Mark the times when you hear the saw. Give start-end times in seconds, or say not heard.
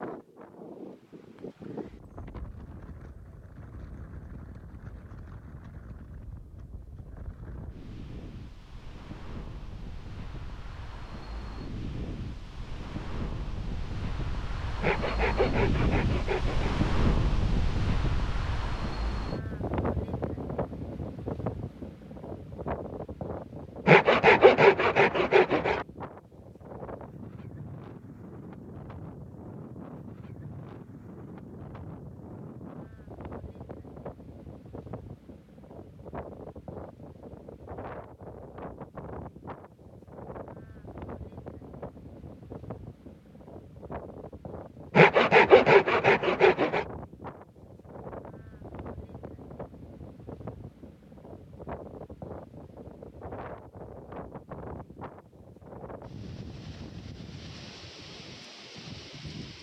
14.8-16.8, 23.9-25.9, 45.0-46.9.